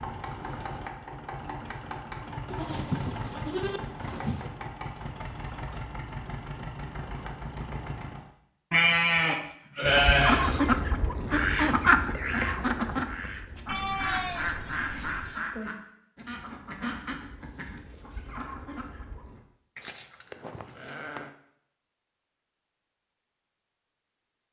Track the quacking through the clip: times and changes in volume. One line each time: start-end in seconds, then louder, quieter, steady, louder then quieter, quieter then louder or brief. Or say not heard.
9.8-19.4 quieter.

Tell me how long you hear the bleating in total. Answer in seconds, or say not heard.
7 s.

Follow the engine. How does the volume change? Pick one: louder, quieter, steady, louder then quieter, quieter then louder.
steady.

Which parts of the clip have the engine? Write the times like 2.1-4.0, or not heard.
0.0-8.2.